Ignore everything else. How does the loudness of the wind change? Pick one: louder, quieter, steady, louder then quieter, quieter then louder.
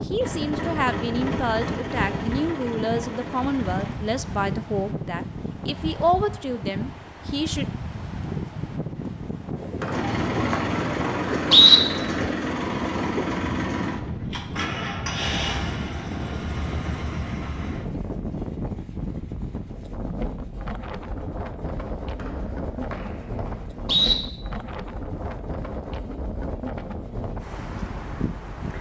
steady.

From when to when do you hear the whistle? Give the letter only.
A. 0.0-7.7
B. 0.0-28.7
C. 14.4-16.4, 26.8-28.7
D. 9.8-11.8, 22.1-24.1
D.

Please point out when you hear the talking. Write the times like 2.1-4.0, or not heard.
0.0-7.7.